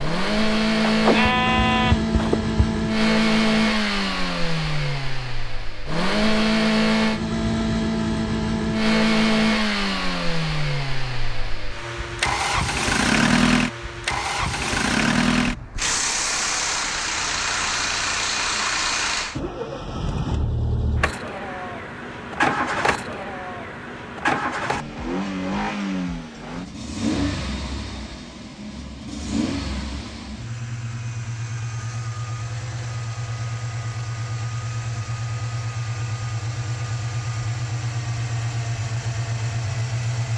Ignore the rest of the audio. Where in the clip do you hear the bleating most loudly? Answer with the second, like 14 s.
1 s.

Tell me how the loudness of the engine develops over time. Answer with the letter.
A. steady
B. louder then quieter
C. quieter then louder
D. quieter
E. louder
D.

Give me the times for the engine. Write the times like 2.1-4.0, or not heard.
0.0-40.3.